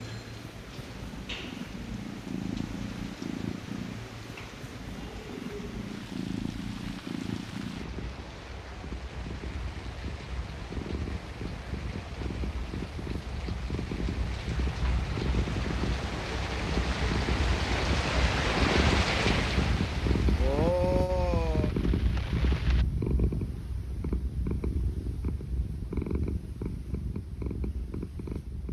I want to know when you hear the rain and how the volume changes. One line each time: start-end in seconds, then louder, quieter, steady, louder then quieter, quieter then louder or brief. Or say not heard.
0.0-22.9 louder.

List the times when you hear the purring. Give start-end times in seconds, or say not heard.
0.0-28.6.